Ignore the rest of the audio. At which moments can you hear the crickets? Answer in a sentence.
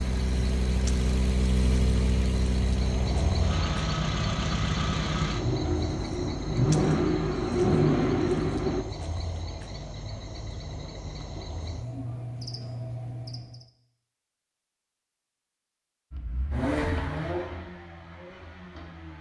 The crickets can be heard from 0.0 to 13.7 s.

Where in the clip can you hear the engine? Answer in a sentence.
The engine can be heard from 0.0 to 8.8 s and from 16.1 to 19.1 s.